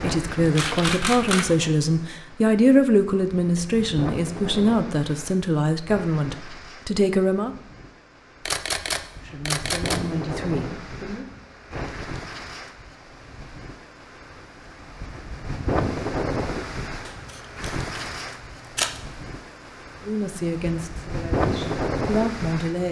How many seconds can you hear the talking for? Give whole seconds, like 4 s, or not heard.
12 s.